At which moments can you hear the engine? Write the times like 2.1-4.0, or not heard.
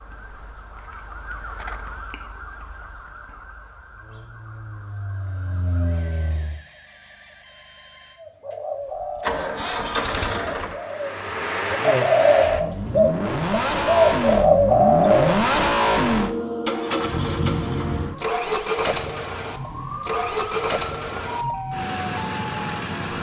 3.9-6.6, 9.0-23.1.